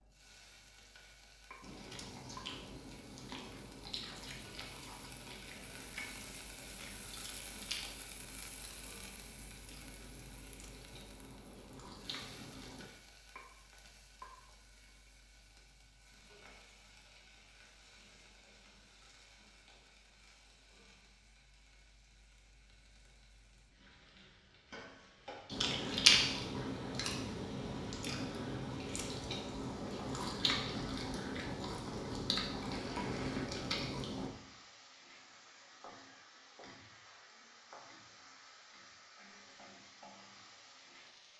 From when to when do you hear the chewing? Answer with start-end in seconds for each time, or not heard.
1.6-12.9, 25.4-34.3.